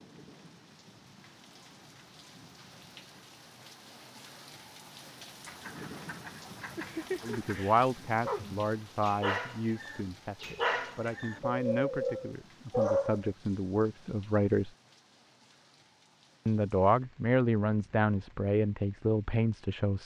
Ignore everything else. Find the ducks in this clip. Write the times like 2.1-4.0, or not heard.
5.5-7.7.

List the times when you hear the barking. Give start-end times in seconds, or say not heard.
6.7-13.3.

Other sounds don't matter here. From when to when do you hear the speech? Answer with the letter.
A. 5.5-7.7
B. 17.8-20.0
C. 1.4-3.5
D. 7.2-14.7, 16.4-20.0
D.